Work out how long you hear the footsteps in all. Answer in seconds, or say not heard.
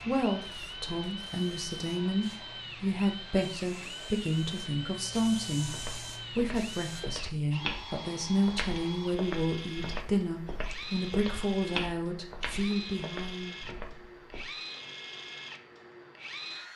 9 s.